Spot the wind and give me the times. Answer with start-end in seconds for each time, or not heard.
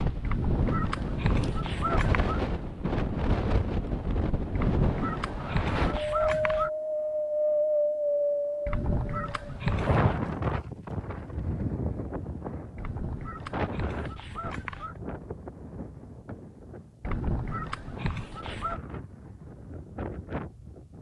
0.0-20.9.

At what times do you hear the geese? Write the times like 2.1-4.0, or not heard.
0.2-2.4, 4.5-6.7, 8.7-10.1, 12.8-14.9, 17.0-18.8.